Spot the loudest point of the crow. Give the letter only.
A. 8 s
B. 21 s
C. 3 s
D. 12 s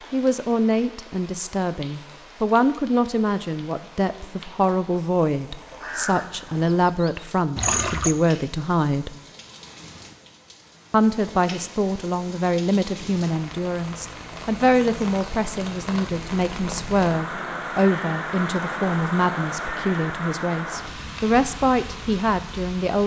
A.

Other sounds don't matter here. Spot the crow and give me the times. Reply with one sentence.
The crow can be heard from 5.7 to 8.2 s.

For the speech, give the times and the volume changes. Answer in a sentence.
The speech can be heard from 0.1 to 9.2 s, at a steady volume; and from 10.9 to 23.0 s, at a steady volume.